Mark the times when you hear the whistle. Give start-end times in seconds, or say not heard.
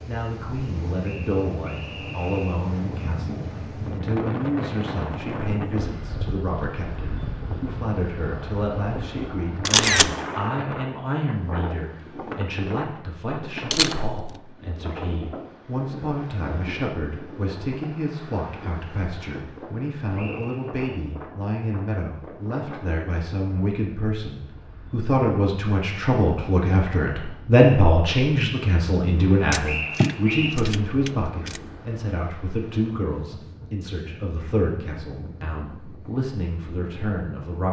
1.0-2.7, 20.1-20.9, 29.6-30.6.